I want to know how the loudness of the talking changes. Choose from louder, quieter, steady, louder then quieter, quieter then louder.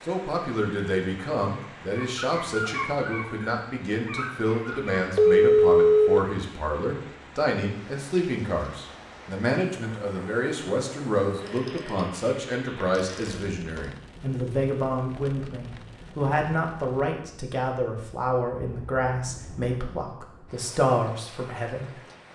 steady.